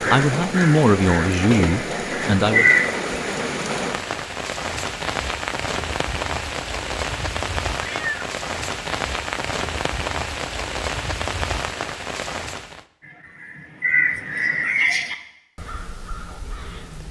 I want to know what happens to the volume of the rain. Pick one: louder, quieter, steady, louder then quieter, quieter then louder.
steady.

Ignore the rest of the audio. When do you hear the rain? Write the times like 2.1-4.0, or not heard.
0.0-12.8.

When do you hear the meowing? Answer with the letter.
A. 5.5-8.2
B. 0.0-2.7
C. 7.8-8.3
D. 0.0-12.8
C.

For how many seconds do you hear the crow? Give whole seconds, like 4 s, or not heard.
7 s.